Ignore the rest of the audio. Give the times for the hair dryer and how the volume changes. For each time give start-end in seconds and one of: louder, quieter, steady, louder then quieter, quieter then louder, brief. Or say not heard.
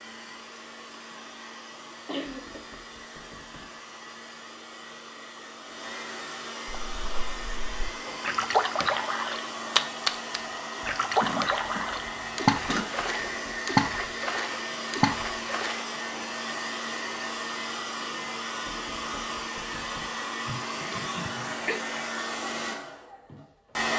0.0-23.9 louder.